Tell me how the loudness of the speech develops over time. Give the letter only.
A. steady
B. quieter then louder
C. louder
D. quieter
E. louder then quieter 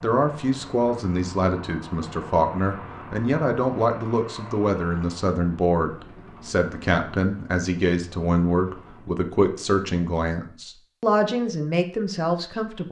A.